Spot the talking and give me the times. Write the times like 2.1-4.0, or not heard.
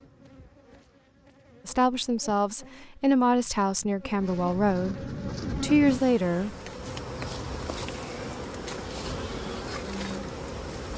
1.6-5.0, 5.5-6.5.